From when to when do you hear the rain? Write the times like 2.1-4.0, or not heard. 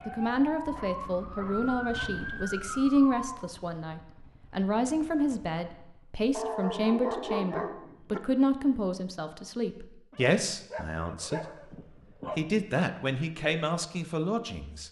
not heard.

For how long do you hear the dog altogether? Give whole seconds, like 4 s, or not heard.
6 s.